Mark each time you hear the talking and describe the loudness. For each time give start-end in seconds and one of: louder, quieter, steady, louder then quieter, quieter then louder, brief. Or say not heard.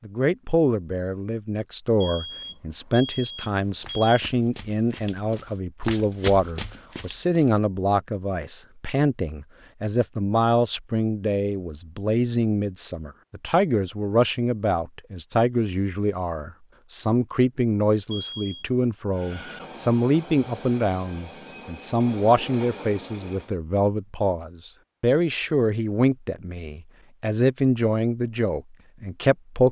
0.0-29.6 steady.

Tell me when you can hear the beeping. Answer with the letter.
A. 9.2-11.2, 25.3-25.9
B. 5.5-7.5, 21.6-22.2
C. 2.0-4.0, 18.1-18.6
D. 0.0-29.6
C.